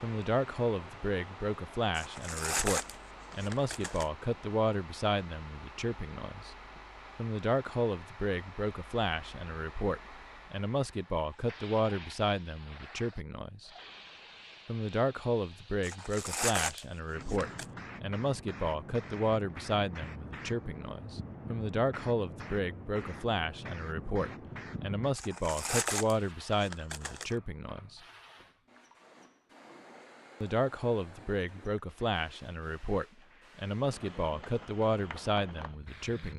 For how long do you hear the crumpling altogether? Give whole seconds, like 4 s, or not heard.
6 s.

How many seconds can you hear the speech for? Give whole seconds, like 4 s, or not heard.
32 s.